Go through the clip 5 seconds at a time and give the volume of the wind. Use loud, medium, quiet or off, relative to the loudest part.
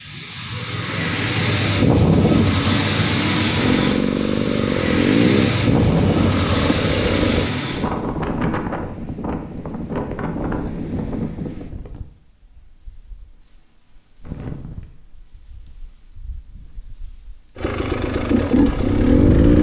loud, loud, medium, medium.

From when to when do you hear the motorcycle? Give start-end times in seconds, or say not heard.
3.5-7.5, 17.6-19.5.